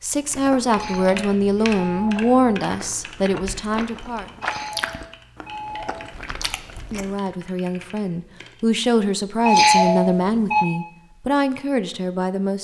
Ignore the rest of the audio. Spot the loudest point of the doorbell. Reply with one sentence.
The volume of the doorbell peaks at 10 seconds.